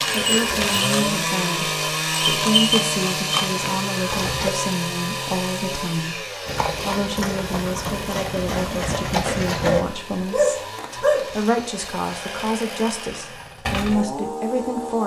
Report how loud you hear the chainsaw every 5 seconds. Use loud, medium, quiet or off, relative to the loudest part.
loud, medium, medium.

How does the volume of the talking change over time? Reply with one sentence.
The volume of the talking stays about the same.